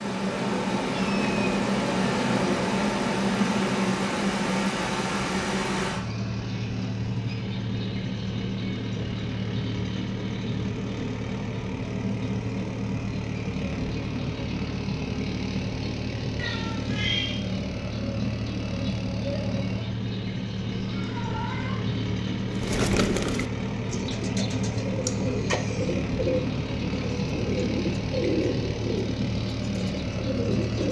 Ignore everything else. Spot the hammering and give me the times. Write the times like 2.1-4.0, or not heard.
not heard.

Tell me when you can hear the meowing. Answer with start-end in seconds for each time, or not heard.
0.9-1.5, 16.4-17.4, 20.7-21.9.